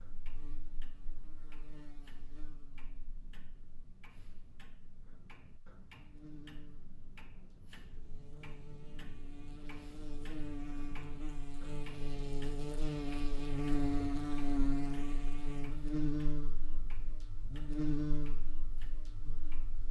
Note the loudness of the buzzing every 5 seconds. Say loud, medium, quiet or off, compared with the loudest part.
quiet, quiet, loud, loud.